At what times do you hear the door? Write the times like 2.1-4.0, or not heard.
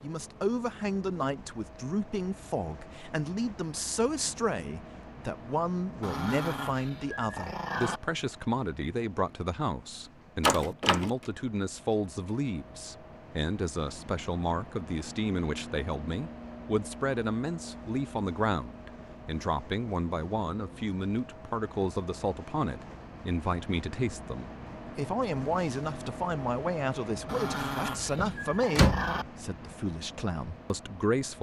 10.4-11.1, 28.1-29.2.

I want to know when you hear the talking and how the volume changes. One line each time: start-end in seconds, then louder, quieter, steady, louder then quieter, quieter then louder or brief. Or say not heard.
0.0-31.3 steady.